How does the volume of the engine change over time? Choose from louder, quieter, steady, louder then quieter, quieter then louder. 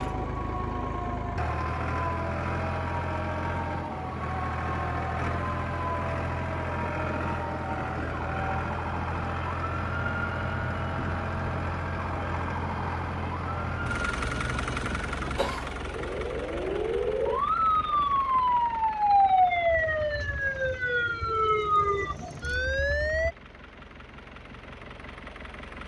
quieter.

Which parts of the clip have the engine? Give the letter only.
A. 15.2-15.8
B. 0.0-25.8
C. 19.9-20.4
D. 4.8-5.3
B.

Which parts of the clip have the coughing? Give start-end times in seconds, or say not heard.
15.2-15.8.